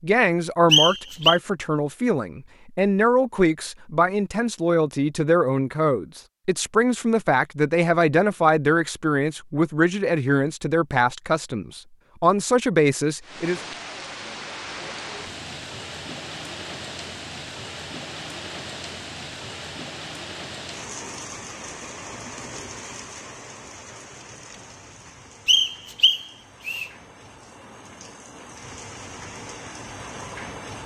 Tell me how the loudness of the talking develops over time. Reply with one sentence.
The loudness of the talking stays about the same.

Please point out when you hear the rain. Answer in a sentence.
You can hear the rain from 13.2 to 30.8 s.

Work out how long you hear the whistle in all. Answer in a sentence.
You can hear the whistle for 2 seconds altogether.